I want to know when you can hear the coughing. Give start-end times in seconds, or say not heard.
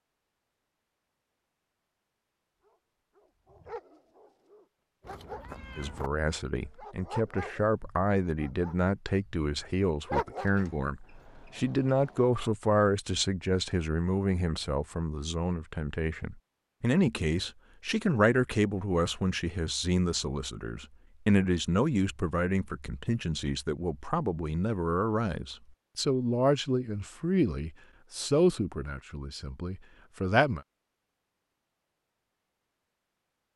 not heard.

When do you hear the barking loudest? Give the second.
10 s.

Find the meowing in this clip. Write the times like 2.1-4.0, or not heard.
5.0-6.1.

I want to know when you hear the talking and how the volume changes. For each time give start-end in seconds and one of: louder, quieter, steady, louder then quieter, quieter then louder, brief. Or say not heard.
5.8-30.6 steady.